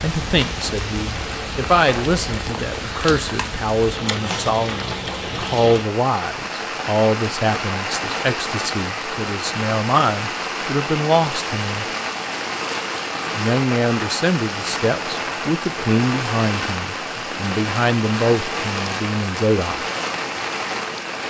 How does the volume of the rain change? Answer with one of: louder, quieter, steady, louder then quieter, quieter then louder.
steady.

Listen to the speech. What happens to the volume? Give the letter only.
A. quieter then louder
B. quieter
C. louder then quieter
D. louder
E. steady
E.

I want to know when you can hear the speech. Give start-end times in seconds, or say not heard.
0.0-11.8, 13.3-19.8.